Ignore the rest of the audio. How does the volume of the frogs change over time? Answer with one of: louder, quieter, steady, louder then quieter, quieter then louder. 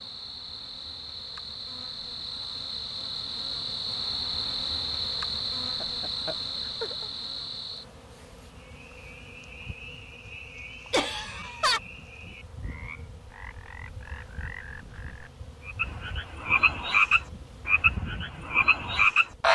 louder.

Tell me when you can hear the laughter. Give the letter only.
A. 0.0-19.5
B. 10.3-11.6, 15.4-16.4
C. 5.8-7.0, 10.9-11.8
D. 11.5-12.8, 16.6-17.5
C.